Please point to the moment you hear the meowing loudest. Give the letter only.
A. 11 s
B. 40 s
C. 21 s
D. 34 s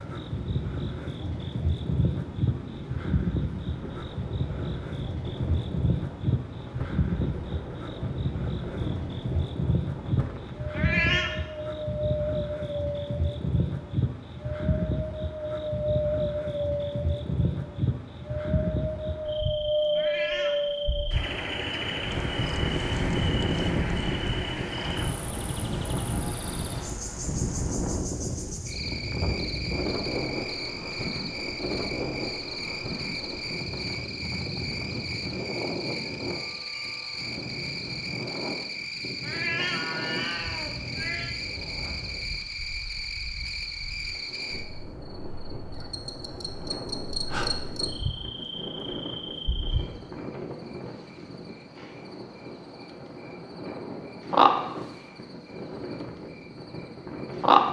A.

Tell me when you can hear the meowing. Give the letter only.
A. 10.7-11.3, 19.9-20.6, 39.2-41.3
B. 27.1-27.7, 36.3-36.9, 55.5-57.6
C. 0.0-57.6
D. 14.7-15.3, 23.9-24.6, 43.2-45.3
A.